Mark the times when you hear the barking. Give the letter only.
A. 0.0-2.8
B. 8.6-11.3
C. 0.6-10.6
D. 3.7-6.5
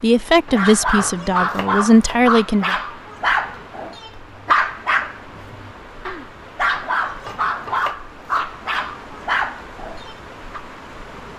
C.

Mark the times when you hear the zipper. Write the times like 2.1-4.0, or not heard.
not heard.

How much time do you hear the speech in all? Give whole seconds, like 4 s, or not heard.
3 s.